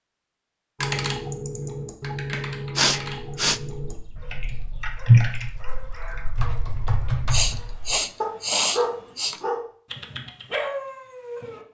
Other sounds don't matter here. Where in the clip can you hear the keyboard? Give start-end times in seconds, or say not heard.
0.8-7.6.